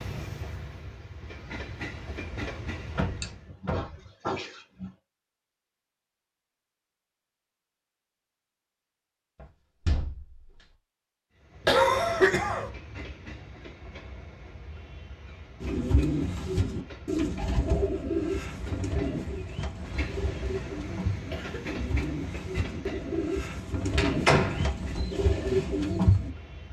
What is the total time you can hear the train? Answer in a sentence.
You can hear the train for 19 seconds altogether.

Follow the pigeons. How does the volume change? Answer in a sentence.
The volume of the pigeons goes down, then up.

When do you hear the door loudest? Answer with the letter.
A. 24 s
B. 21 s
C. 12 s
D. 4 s
A.